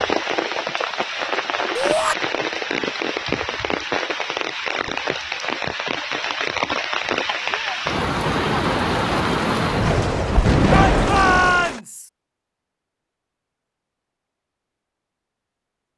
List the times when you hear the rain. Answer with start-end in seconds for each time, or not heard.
0.0-11.8.